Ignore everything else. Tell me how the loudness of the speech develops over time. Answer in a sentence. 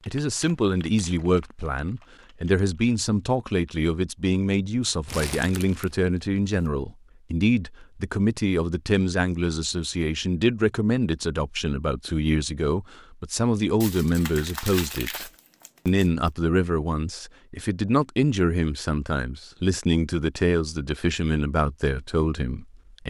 The volume of the speech stays about the same.